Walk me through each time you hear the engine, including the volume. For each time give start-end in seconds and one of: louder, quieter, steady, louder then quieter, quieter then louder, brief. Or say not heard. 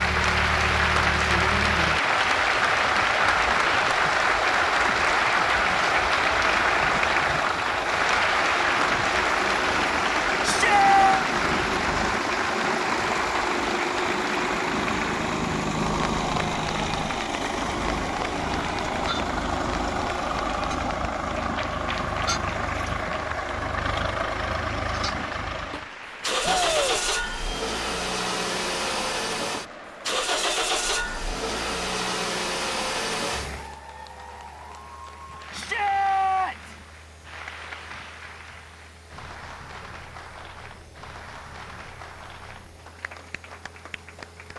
0.0-44.5 quieter.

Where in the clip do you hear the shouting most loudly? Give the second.
11 s.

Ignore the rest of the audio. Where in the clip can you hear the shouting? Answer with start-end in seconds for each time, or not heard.
10.4-11.2, 26.4-27.0, 35.5-36.8.